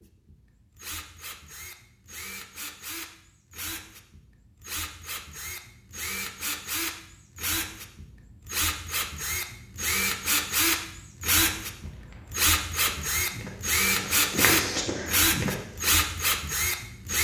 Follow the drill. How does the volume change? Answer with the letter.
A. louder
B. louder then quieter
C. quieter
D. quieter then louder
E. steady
A.